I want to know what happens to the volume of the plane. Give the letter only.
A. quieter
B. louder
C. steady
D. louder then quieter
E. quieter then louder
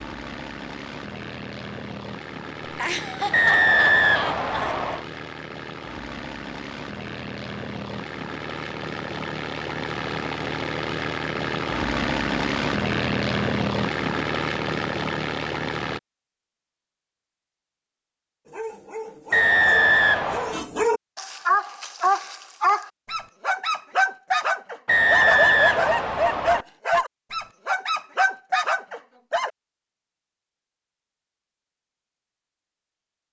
B.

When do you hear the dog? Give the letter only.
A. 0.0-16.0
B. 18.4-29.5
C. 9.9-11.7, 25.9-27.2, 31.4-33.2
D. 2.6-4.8
B.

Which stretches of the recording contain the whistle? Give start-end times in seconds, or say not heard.
3.3-5.0, 19.3-20.6, 24.9-26.6.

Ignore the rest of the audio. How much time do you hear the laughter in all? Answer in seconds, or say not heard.
2 s.